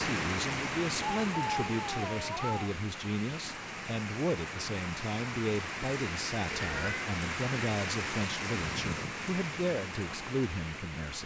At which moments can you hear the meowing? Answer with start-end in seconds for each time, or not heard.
1.2-2.8, 6.5-7.1.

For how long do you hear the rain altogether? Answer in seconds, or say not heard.
11 s.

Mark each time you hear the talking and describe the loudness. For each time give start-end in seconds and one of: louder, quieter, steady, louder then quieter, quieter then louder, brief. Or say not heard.
0.0-11.2 steady.